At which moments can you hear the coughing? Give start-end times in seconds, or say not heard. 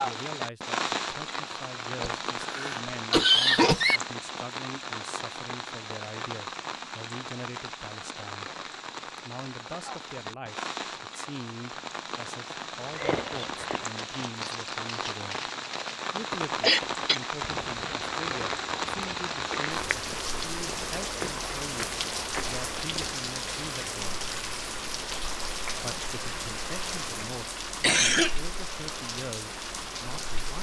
2.0-4.0, 16.6-17.2, 27.8-28.4.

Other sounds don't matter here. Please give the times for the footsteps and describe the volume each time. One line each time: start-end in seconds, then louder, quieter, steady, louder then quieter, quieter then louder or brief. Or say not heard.
12.8-23.1 steady.